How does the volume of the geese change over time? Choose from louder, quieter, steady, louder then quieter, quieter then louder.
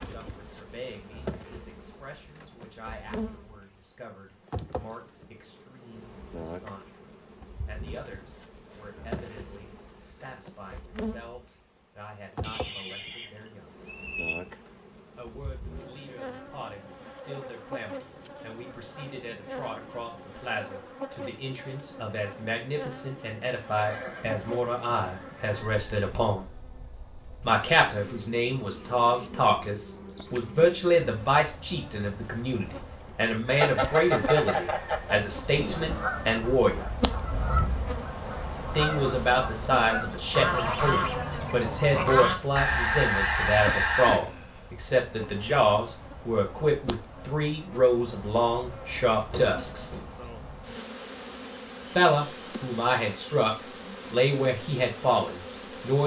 quieter then louder.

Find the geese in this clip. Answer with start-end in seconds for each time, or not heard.
33.5-44.2.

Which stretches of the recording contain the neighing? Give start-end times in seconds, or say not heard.
12.4-14.3, 23.8-26.4, 49.3-50.1.